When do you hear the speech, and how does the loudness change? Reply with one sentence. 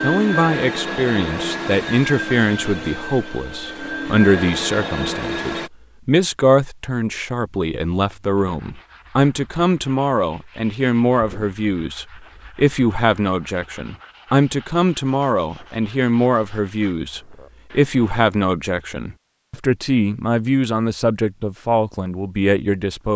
The speech can be heard from 0.0 to 23.1 s, at a steady volume.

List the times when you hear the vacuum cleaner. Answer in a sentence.
You can hear the vacuum cleaner from 0.0 to 5.7 s.